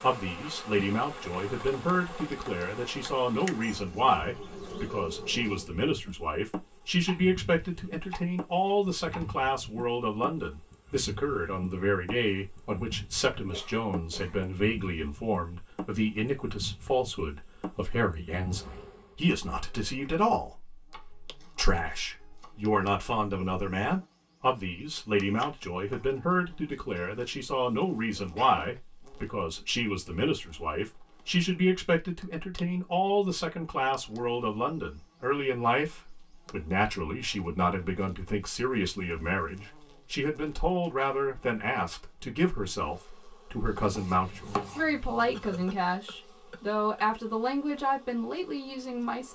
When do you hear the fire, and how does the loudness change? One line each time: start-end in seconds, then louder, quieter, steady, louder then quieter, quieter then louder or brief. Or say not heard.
not heard.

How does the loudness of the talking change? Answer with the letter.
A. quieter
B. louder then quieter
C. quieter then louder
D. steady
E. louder
D.